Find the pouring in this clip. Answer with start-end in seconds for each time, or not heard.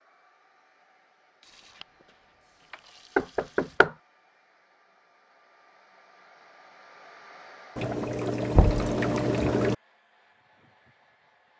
1.4-3.8, 7.8-9.8.